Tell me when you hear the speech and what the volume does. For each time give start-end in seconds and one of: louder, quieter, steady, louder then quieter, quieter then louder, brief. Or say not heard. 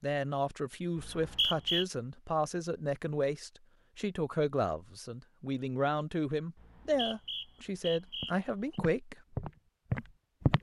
0.0-9.2 steady.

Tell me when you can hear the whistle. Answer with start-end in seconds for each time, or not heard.
0.9-1.9, 6.5-8.8.